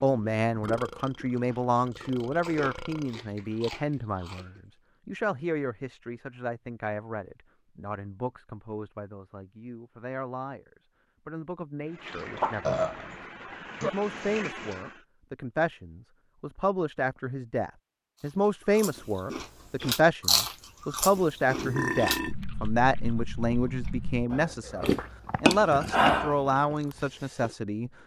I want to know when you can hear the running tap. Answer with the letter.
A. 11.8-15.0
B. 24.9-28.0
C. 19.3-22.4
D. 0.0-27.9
A.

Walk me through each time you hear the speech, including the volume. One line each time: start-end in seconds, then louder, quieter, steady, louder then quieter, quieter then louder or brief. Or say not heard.
0.0-27.9 quieter then louder.